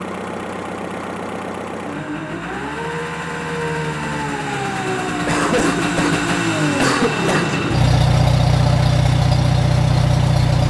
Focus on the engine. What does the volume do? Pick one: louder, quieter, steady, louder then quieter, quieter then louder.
louder.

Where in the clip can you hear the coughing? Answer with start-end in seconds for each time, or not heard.
5.2-7.5.